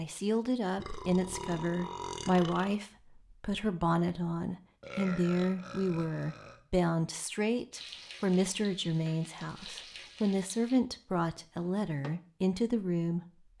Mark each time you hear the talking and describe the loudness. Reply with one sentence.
You can hear the talking from 0.0 to 13.5 s, at a steady volume.